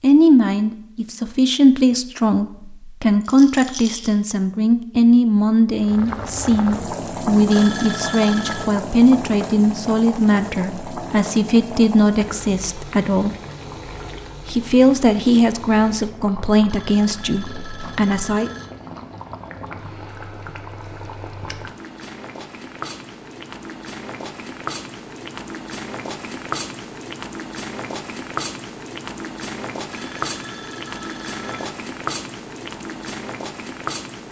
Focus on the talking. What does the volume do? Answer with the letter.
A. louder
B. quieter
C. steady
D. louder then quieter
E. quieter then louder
C.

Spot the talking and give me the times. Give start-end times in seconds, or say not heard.
0.0-13.3, 14.4-18.5.